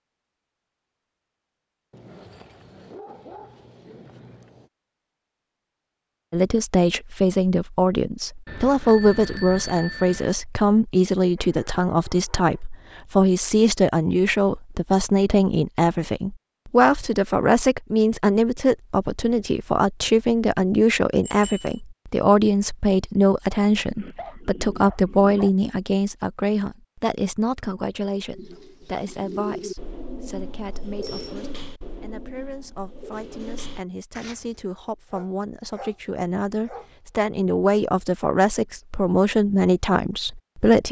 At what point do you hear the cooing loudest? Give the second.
30 s.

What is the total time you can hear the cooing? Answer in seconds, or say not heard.
6 s.